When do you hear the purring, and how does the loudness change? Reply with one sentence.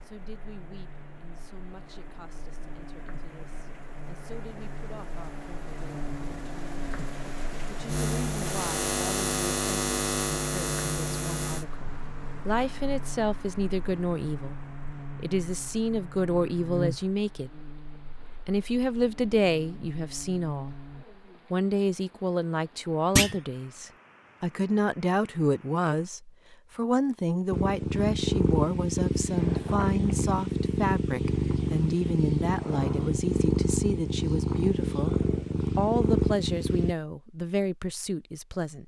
You can hear the purring from 27.5 to 37.0 s, at a steady volume.